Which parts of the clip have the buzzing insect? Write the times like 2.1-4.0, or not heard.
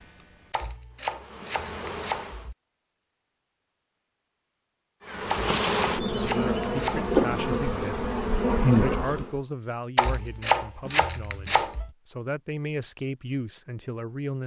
0.0-2.5, 5.0-9.4.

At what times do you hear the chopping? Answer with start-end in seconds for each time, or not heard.
0.5-2.5, 5.3-7.1, 9.9-11.9.